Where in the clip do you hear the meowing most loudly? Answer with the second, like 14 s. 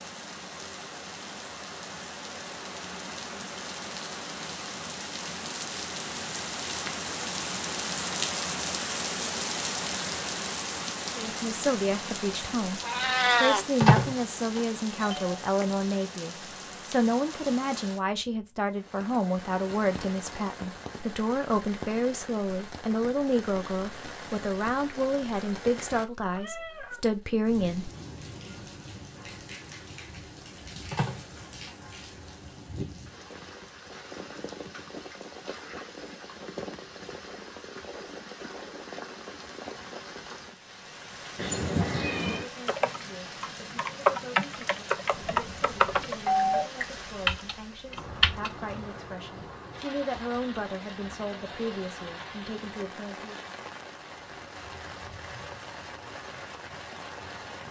13 s.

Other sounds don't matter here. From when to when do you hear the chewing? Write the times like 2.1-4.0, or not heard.
not heard.